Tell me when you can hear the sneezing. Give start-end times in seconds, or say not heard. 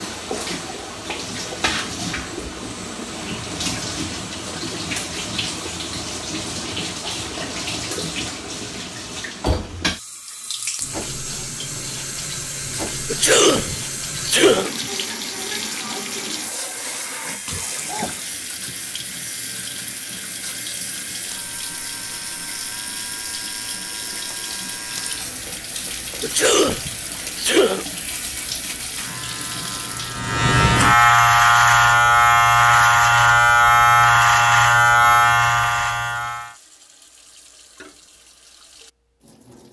13.1-14.7, 26.2-27.9.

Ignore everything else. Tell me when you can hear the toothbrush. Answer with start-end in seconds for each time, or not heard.
not heard.